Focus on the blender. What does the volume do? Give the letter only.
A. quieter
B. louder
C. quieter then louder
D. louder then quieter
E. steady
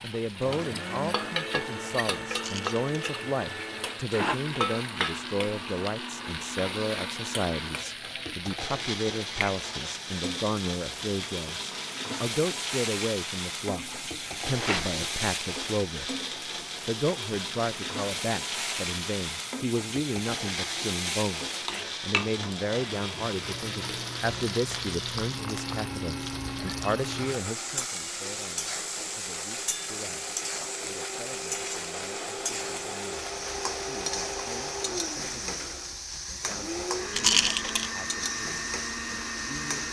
E.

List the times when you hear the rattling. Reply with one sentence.
The rattling can be heard from 2.3 to 2.8 s, from 14.5 to 15.0 s and from 37.1 to 37.9 s.